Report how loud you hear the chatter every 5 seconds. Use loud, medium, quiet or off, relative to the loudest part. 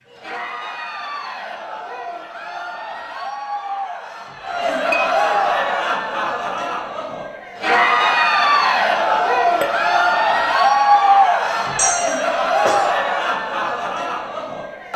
medium, loud, loud.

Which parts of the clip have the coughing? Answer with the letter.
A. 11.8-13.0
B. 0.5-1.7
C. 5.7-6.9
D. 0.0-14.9
A.